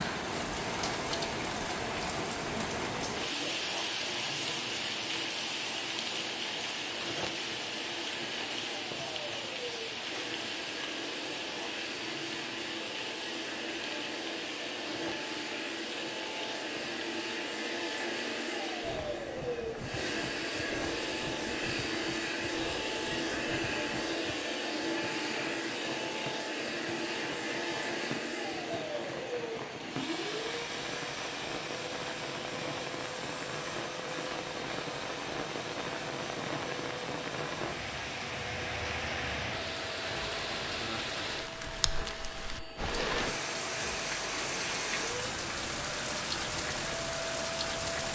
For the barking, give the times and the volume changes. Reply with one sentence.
The barking can't be heard in this clip.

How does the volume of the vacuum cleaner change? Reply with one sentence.
The volume of the vacuum cleaner goes up, then down.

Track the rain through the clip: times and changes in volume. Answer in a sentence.
The rain can be heard from 0.0 to 48.1 s, getting quieter then louder.